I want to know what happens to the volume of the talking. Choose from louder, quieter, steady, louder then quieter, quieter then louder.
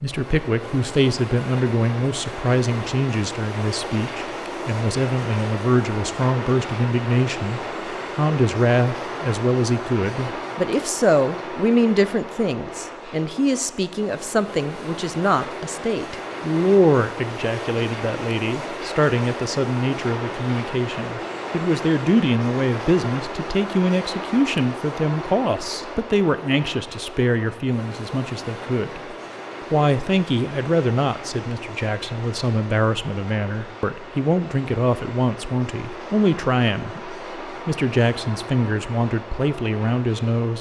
steady.